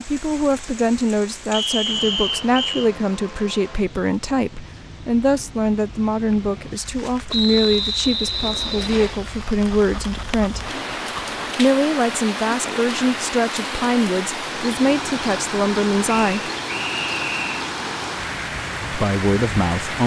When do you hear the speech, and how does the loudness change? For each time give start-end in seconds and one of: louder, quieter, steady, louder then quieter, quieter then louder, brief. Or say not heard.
0.1-10.7 steady
11.6-16.5 steady
18.9-20.0 brief.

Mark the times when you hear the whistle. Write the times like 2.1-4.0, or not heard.
1.5-2.9, 7.3-9.2, 16.1-17.7.